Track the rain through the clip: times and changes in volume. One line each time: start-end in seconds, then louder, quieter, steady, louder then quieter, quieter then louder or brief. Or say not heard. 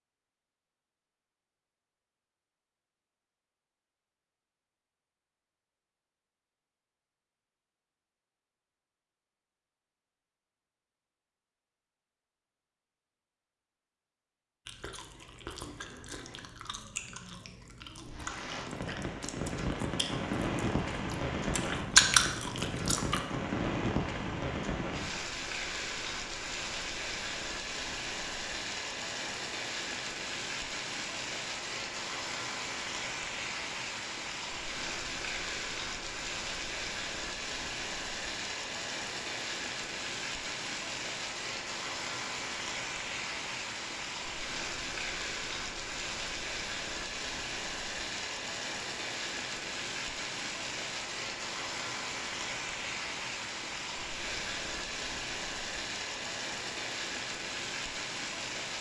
18.1-58.7 steady.